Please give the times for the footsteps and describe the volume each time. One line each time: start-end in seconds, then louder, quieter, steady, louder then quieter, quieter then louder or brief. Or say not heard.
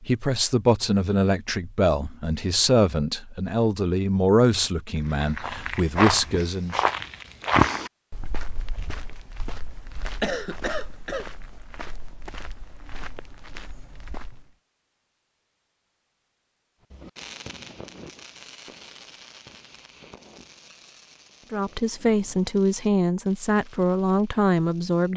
5.0-14.5 quieter.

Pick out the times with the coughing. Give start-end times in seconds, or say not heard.
10.2-11.2.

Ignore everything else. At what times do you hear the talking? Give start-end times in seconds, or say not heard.
0.0-6.8, 21.5-25.1.